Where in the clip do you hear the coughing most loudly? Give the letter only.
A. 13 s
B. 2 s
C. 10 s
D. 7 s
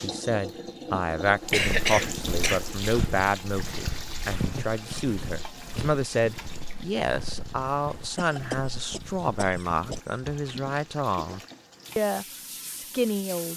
B.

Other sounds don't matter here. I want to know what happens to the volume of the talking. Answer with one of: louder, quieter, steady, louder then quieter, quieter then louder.
steady.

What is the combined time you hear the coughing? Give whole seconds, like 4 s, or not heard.
3 s.